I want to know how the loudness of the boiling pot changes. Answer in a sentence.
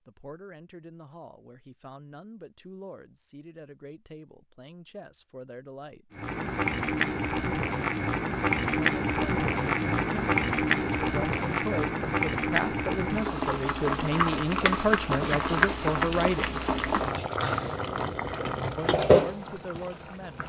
The volume of the boiling pot stays about the same.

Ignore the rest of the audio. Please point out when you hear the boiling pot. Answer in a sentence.
The boiling pot can be heard from 6.1 to 20.4 s.